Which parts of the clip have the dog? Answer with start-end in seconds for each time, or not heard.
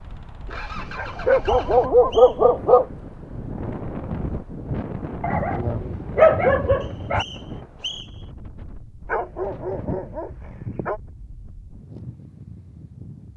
0.9-2.9, 5.2-7.2, 9.1-11.0.